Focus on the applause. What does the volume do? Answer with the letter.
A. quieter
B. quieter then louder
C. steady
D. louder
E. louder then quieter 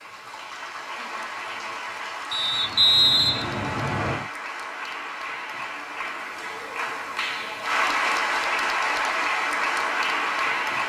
D.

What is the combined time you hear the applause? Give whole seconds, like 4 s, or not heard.
11 s.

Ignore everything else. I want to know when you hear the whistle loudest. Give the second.
3 s.